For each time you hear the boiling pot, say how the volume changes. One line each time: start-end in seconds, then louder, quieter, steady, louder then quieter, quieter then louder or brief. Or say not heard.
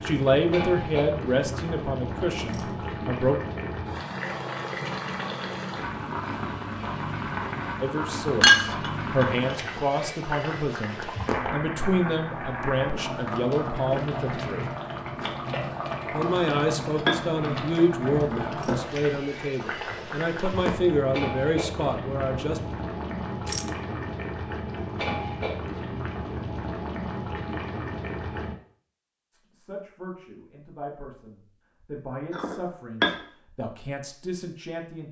0.0-28.6 steady.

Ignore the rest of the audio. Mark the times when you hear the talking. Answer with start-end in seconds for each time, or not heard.
0.0-3.4, 7.8-14.7, 16.1-22.6, 29.3-35.0.